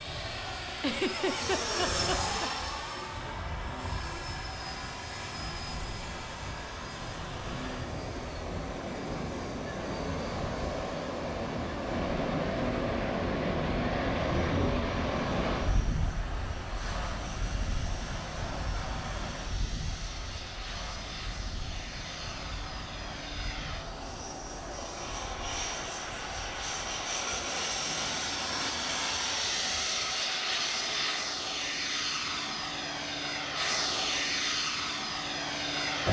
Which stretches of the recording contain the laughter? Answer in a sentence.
The laughter can be heard from 0.8 to 2.5 s.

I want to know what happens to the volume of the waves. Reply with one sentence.
The volume of the waves goes up, then down.